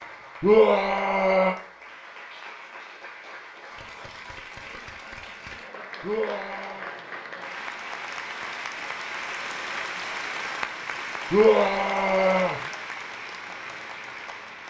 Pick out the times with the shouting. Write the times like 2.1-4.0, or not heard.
0.4-1.6, 6.0-6.9, 11.3-12.6.